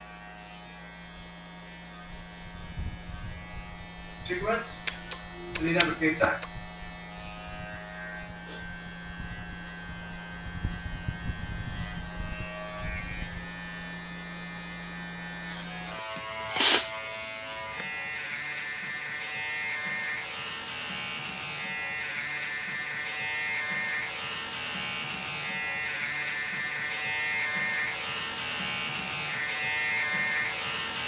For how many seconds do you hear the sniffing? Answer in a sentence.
You can hear the sniffing for 3 seconds altogether.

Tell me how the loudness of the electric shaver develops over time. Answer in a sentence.
The loudness of the electric shaver goes up.